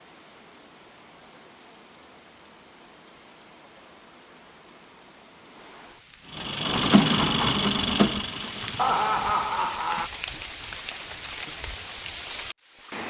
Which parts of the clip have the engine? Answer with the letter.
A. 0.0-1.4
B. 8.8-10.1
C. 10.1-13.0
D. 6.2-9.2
D.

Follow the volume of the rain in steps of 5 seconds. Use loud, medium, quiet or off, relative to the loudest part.
quiet, loud, loud.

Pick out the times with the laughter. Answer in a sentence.
The laughter can be heard from 8.8 to 10.1 s.